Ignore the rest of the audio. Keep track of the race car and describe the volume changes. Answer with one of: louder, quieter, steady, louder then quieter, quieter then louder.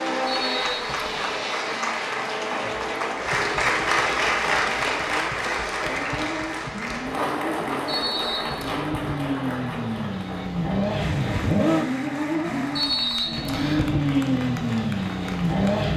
louder.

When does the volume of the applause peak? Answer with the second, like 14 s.
4 s.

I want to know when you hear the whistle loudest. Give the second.
13 s.